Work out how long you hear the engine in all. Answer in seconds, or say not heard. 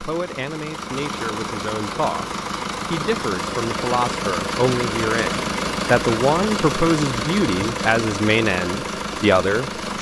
10 s.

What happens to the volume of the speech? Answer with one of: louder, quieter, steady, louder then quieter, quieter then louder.
louder.